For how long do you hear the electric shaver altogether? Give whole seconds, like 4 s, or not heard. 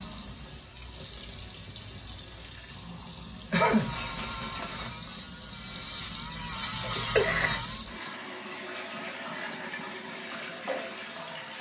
4 s.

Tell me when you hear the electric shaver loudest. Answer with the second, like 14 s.
7 s.